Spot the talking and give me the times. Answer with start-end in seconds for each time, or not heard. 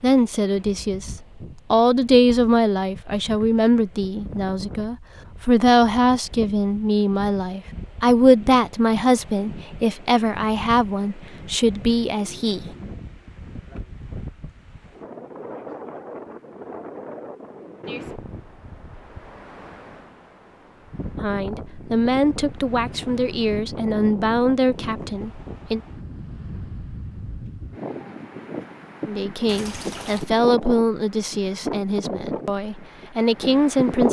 0.0-12.7, 21.2-25.8, 29.1-34.0.